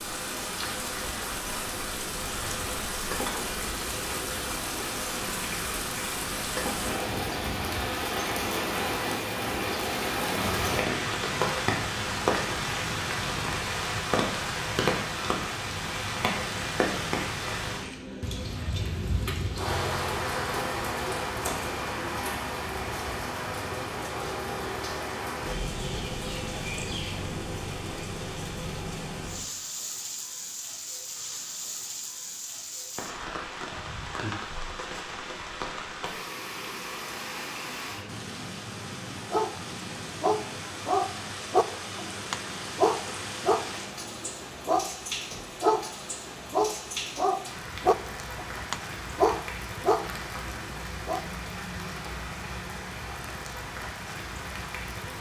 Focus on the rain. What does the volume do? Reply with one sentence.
The loudness of the rain goes down.